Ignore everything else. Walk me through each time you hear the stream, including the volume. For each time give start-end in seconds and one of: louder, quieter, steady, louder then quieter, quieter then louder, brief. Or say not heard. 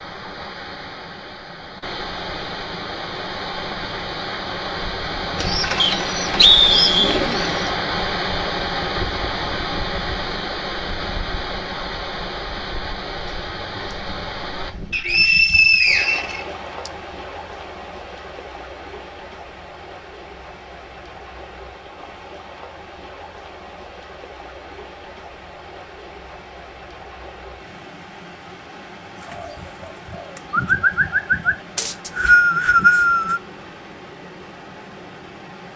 0.0-35.7 quieter.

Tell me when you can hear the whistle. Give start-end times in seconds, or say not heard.
5.8-7.2, 14.9-16.9, 31.8-33.4.